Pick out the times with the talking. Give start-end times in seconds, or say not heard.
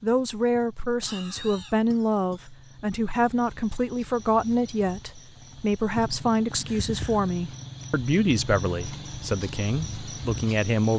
0.0-10.9.